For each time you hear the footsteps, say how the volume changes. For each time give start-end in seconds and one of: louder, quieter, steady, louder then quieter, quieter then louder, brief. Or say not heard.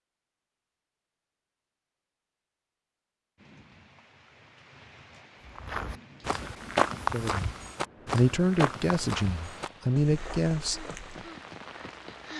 5.5-11.3 quieter.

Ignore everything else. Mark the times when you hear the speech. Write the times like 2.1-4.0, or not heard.
7.1-7.5, 8.1-10.8.